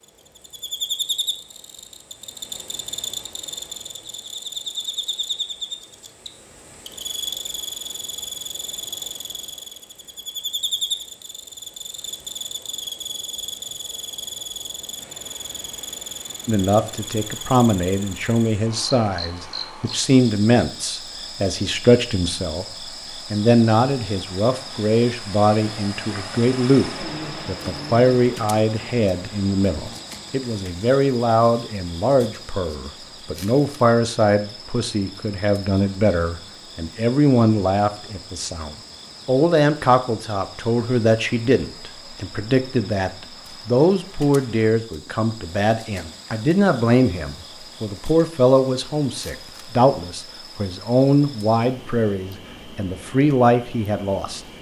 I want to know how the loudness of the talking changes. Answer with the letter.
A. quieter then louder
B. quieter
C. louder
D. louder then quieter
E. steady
E.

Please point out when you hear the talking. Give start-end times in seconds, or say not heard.
16.4-22.6, 23.3-54.4.